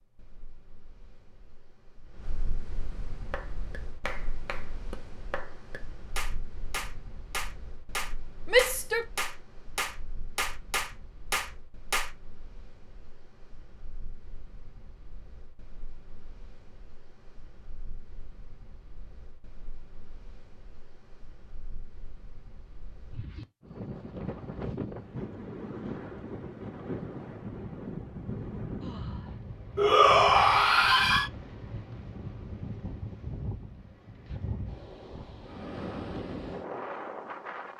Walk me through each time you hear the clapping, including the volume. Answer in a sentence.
You can hear the clapping from 3.3 to 12.1 s, getting louder.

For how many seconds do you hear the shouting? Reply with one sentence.
The shouting can be heard for 2 seconds in total.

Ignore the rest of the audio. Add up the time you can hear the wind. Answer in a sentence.
The wind can be heard for 38 seconds in total.